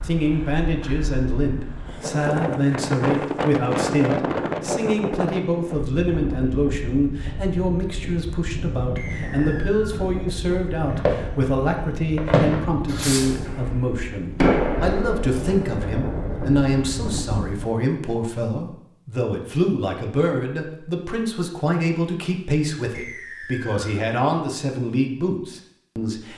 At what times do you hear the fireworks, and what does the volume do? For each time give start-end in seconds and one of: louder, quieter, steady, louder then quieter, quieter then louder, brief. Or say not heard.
10.8-17.1 louder then quieter.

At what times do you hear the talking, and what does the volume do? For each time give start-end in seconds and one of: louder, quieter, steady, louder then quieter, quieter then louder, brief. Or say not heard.
0.0-26.3 steady.